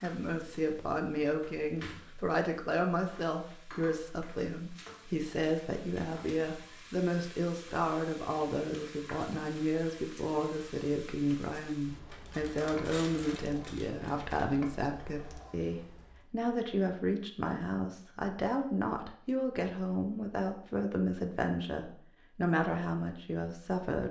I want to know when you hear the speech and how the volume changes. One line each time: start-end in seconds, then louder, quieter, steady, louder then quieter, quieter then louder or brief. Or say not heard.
0.0-24.0 steady.